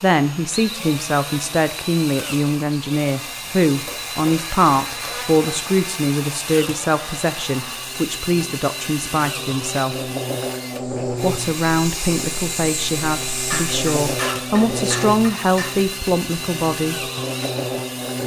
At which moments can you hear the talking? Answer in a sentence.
You can hear the talking from 0.0 to 9.9 s and from 11.2 to 17.1 s.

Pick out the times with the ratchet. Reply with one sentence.
You can't hear the ratchet here.